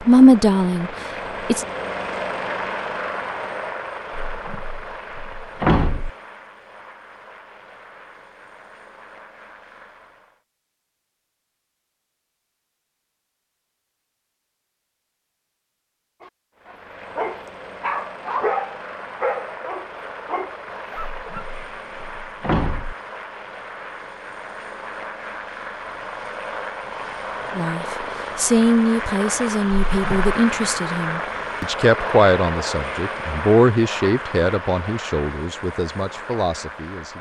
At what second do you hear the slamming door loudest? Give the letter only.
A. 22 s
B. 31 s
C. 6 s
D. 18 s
C.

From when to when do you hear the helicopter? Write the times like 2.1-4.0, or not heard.
0.0-10.4, 16.6-37.1.